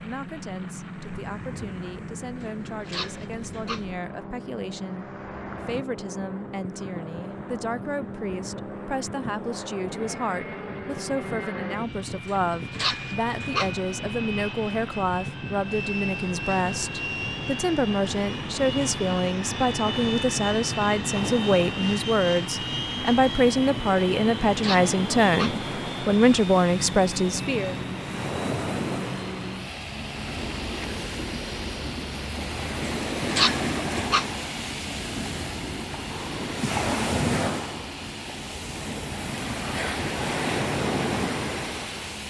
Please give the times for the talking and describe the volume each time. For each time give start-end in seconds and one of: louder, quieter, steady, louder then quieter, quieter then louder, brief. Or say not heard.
0.0-27.8 louder.